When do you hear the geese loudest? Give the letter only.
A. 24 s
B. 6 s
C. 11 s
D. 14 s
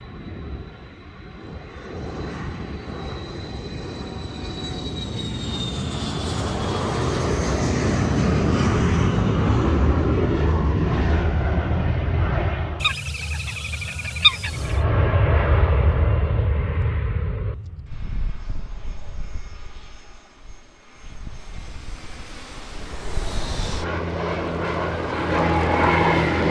D.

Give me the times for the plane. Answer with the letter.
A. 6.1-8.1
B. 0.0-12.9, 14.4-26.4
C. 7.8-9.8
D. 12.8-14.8
B.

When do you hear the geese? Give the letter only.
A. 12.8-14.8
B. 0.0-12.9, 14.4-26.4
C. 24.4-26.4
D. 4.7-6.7
A.